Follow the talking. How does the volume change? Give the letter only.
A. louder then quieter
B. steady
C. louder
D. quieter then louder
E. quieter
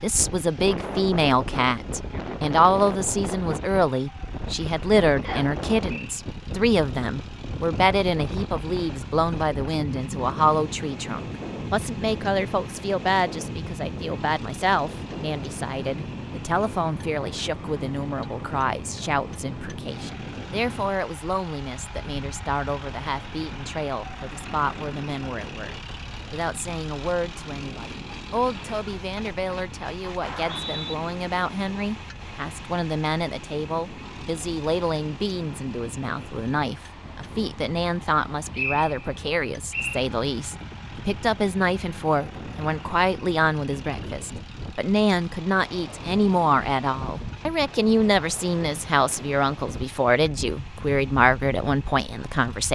D.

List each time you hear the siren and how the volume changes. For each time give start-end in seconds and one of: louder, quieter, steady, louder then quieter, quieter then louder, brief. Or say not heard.
not heard.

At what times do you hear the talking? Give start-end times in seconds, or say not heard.
0.0-52.6.